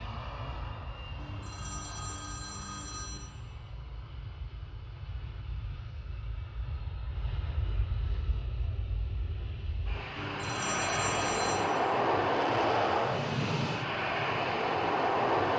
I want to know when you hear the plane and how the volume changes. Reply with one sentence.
You can hear the plane from 0.0 to 15.5 s, getting louder.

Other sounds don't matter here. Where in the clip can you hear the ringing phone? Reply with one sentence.
You can hear the ringing phone from 1.1 to 3.2 s and from 10.2 to 11.7 s.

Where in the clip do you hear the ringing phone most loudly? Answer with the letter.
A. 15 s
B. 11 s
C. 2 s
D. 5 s
B.